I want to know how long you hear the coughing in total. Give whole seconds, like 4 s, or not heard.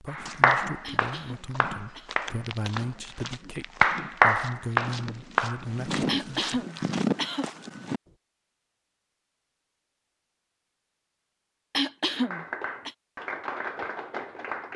4 s.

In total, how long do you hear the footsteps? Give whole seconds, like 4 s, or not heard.
8 s.